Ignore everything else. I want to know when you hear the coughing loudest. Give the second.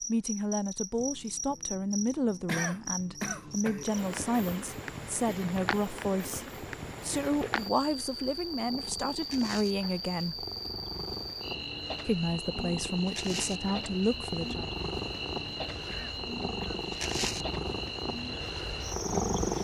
3 s.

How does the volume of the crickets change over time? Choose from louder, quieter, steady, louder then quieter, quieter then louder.
steady.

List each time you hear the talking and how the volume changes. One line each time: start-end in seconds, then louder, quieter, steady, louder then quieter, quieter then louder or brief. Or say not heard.
0.1-10.4 steady
12.1-14.7 brief.